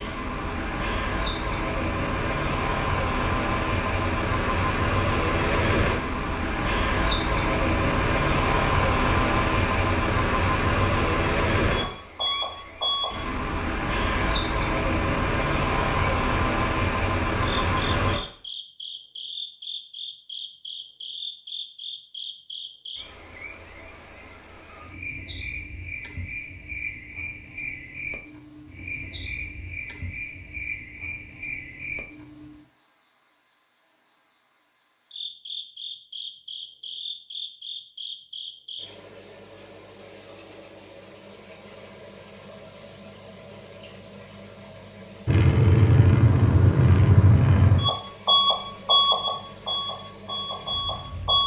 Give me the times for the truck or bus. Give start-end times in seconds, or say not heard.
0.0-18.2, 45.2-51.4.